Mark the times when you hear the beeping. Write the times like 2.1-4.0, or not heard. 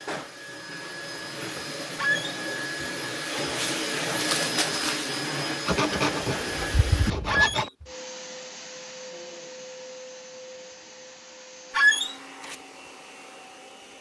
not heard.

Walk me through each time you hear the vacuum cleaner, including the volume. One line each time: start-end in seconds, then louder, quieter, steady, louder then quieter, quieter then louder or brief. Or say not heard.
0.0-13.9 louder then quieter.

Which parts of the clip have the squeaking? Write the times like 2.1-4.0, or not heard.
1.9-2.4, 7.2-7.7, 11.8-12.2.